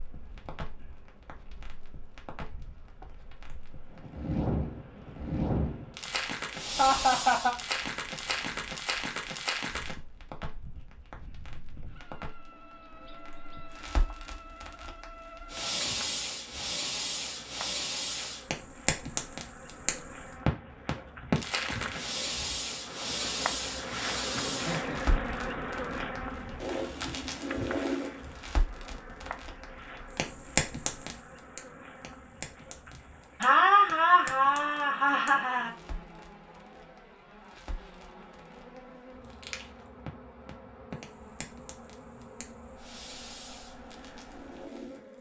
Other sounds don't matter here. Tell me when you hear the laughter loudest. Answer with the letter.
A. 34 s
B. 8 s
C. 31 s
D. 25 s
A.